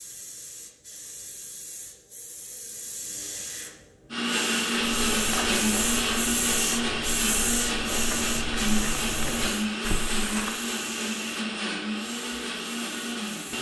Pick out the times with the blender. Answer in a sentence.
The blender can be heard from 4.1 to 13.5 s.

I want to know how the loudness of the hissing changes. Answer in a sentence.
The loudness of the hissing goes up, then down.